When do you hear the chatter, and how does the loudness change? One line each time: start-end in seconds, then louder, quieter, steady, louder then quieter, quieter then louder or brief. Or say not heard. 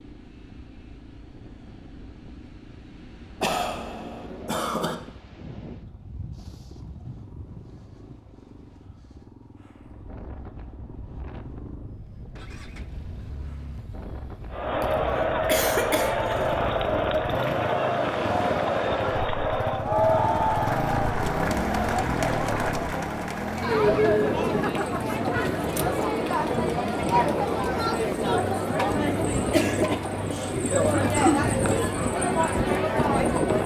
14.5-33.6 steady.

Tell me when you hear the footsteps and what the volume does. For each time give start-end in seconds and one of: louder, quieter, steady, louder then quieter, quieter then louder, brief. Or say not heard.
not heard.